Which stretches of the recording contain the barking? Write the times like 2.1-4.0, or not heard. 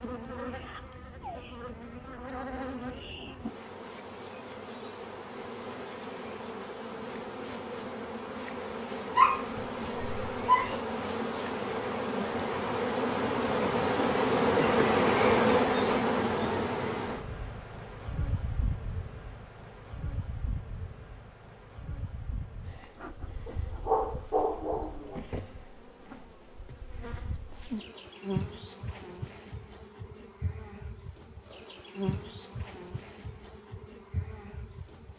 9.2-10.7, 23.4-25.2.